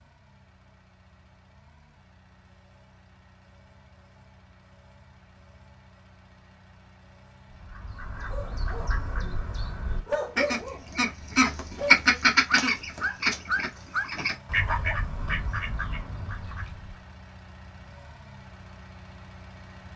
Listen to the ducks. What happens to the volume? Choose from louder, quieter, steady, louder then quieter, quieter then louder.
louder then quieter.